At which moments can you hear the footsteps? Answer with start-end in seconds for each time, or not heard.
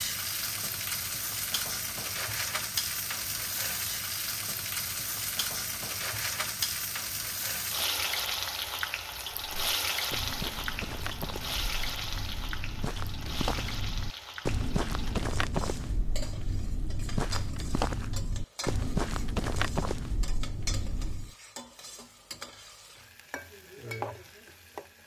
9.3-21.3.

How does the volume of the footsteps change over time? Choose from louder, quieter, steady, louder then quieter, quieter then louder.
louder.